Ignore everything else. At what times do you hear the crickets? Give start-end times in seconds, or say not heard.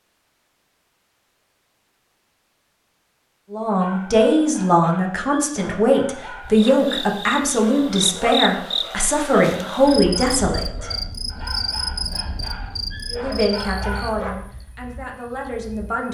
6.5-16.0.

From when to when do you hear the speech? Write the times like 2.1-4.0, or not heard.
3.5-10.9, 13.1-16.0.